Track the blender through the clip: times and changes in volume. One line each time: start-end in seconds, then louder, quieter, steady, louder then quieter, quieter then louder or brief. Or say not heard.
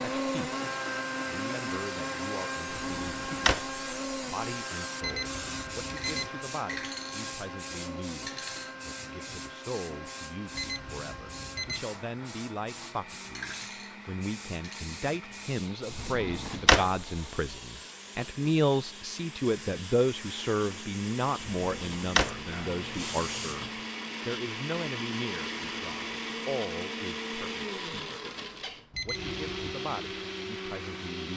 0.0-31.3 quieter then louder.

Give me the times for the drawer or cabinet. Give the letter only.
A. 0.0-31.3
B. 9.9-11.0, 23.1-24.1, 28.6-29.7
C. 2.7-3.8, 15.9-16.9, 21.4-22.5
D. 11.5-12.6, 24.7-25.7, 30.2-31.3
C.